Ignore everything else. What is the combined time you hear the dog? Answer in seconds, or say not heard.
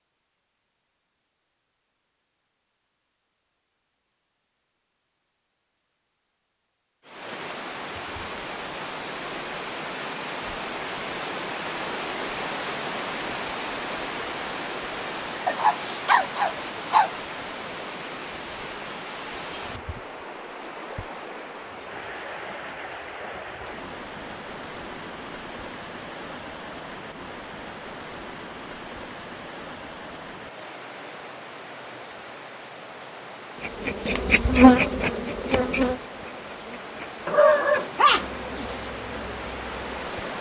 3 s.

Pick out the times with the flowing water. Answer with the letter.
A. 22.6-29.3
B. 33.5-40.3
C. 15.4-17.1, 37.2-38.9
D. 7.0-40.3
D.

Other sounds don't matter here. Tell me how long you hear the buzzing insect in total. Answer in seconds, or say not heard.
7 s.